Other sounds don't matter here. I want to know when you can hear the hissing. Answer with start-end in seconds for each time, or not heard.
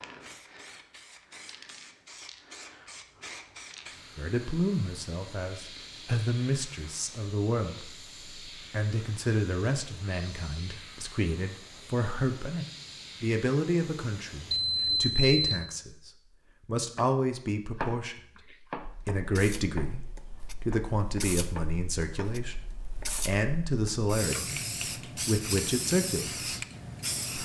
0.0-15.2, 18.8-27.4.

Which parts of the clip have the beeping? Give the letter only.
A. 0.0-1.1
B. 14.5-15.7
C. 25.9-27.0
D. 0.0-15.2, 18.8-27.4
B.